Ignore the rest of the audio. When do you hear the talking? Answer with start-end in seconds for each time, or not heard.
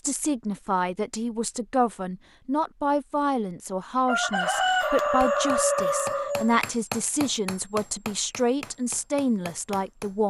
0.1-10.2.